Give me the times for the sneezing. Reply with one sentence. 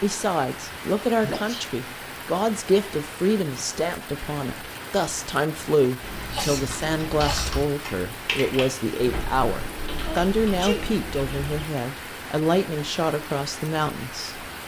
You can hear the sneezing from 1.2 to 1.6 s, from 6.2 to 7.5 s and from 10.0 to 10.9 s.